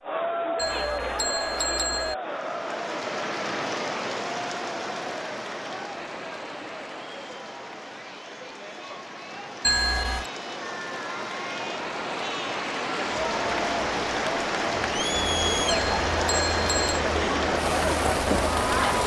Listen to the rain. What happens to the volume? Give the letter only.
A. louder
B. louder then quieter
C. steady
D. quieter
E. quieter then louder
E.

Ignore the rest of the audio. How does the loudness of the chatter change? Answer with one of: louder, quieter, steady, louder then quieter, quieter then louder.
quieter then louder.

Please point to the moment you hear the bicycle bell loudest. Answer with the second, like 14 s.
10 s.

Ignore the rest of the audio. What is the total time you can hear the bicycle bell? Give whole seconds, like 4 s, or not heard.
4 s.